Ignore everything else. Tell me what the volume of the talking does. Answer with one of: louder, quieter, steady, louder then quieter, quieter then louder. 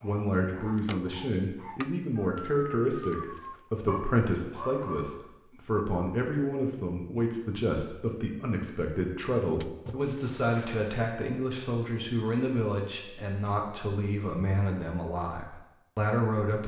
steady.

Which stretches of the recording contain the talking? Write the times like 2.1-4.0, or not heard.
0.0-16.6.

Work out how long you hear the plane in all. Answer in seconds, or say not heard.
not heard.